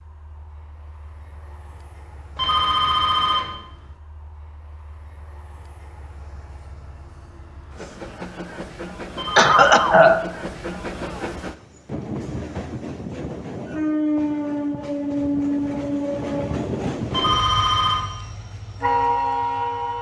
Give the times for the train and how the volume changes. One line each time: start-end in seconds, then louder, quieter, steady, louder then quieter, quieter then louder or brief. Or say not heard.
0.0-19.9 louder.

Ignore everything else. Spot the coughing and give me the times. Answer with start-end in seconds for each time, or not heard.
9.3-10.2.